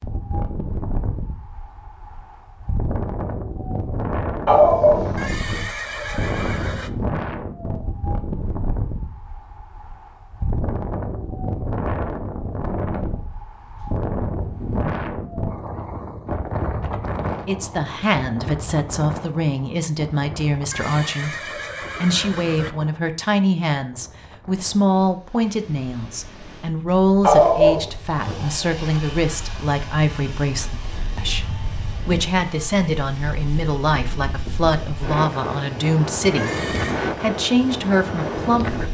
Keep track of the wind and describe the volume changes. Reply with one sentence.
The loudness of the wind goes down, then up.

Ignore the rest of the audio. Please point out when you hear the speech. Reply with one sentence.
The speech can be heard from 17.4 to 38.8 s.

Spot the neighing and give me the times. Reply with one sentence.
You can hear the neighing from 5.2 to 6.9 s, from 20.7 to 22.7 s and from 36.4 to 37.0 s.